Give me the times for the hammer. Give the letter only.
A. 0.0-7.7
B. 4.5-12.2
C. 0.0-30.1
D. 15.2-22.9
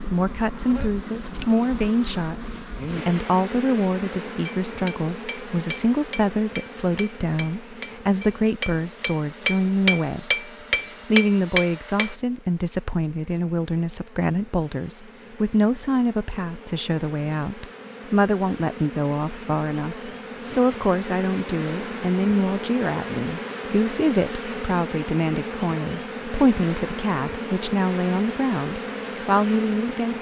B.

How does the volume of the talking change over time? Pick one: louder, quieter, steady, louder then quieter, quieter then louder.
steady.